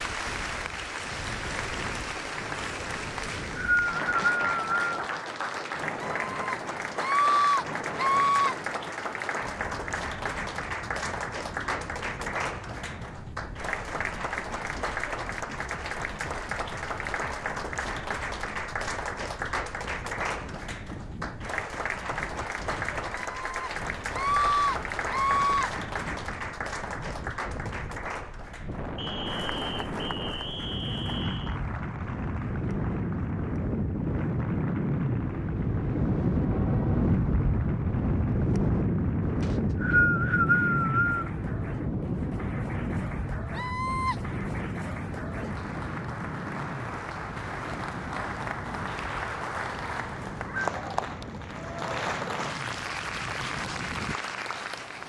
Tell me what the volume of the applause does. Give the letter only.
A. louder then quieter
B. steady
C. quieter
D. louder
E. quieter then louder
E.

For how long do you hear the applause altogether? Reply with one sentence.
The applause can be heard for 55 seconds in total.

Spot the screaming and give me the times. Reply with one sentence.
The screaming can be heard from 6.0 to 8.6 s, from 23.3 to 25.7 s and from 43.5 to 44.1 s.